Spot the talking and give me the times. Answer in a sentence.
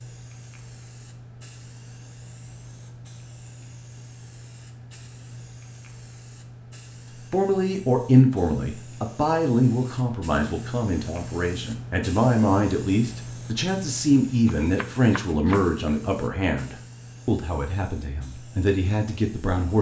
You can hear the talking from 7.3 to 19.7 s.